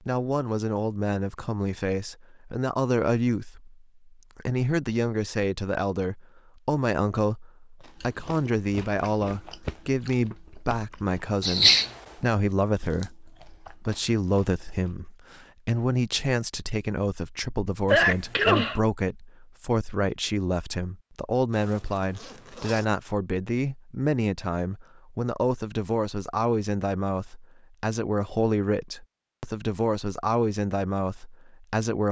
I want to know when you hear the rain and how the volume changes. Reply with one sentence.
You can't hear the rain here.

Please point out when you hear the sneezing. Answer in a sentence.
You can hear the sneezing from 11.4 to 11.9 s and from 17.9 to 18.8 s.